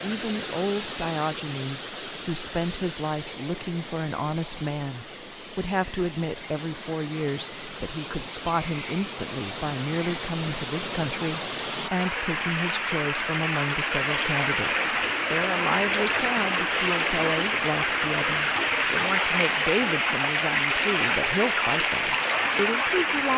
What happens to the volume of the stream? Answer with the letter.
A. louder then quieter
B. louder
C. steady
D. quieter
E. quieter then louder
B.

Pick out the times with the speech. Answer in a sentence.
You can hear the speech from 0.0 to 23.3 s.